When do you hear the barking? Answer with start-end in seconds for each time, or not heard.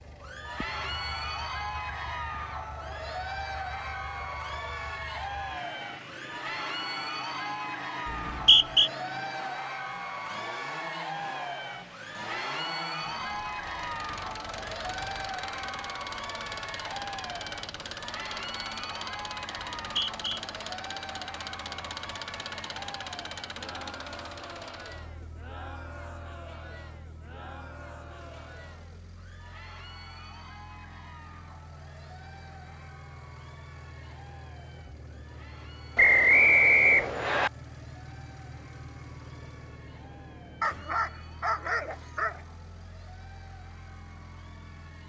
40.6-42.5.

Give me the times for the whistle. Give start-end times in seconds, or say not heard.
8.1-8.9, 19.8-20.4, 36.0-37.5.